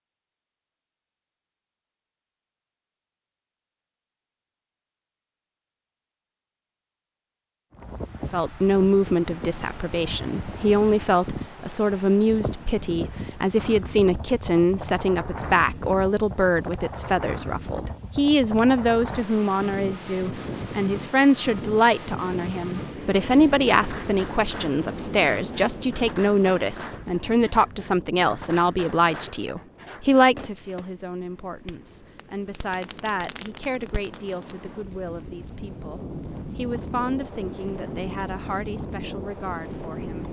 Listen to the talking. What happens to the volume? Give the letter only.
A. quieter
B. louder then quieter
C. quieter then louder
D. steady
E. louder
A.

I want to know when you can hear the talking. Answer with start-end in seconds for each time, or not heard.
8.3-40.2.